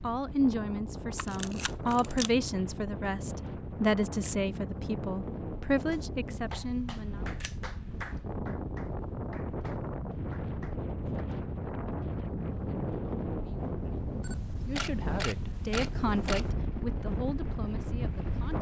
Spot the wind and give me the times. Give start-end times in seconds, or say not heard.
0.0-18.5.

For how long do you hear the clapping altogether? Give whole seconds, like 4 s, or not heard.
5 s.